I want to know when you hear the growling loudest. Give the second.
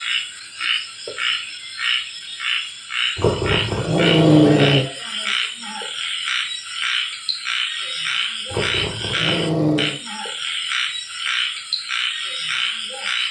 4 s.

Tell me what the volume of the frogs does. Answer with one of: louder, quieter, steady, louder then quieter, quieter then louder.
steady.